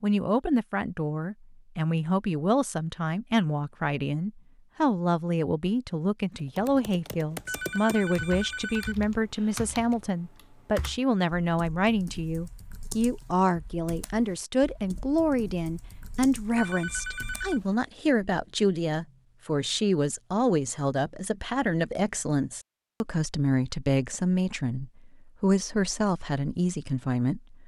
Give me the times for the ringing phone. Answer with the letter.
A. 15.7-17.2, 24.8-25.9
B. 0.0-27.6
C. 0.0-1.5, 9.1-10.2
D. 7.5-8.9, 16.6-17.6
D.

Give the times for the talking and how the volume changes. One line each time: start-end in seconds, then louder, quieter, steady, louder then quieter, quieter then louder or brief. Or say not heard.
0.0-27.6 steady.